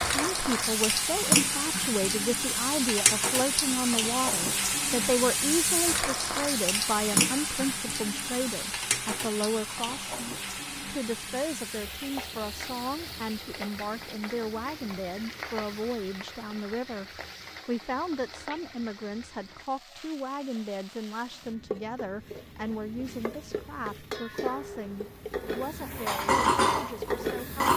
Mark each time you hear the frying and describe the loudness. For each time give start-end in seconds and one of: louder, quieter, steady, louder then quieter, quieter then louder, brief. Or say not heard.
0.0-27.7 quieter then louder.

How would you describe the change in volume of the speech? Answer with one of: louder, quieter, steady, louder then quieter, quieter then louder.
quieter.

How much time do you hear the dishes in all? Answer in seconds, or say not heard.
3 s.